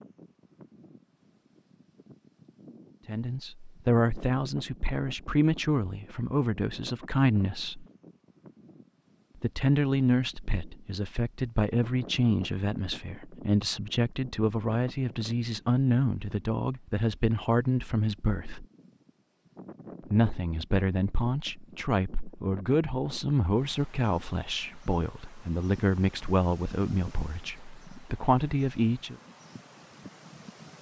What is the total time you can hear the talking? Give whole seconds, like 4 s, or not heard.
23 s.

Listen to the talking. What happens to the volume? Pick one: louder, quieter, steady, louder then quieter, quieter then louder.
steady.